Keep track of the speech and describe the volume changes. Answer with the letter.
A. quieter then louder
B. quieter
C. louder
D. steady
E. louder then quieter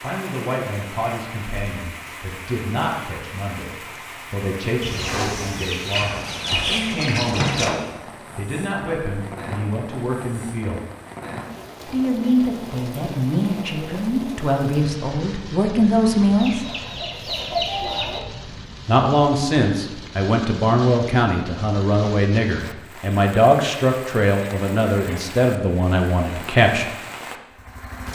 C.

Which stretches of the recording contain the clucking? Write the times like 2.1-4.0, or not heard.
4.8-7.8, 16.4-18.2.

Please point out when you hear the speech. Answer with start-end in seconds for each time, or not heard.
0.0-10.8, 11.8-16.6, 18.9-26.9.